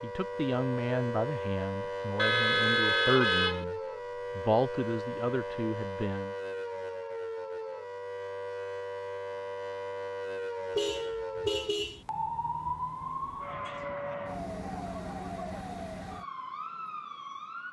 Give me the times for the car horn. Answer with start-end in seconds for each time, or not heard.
2.1-3.6, 10.8-12.0.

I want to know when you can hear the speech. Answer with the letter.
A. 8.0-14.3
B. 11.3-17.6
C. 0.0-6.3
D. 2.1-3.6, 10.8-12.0
C.